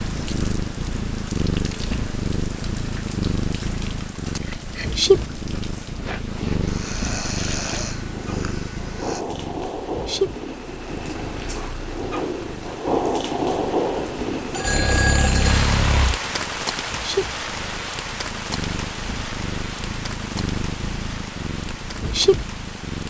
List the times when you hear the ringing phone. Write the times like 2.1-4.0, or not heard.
14.5-15.7.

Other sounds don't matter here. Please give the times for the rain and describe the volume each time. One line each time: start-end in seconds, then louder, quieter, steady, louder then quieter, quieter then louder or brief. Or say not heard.
0.0-23.0 louder then quieter.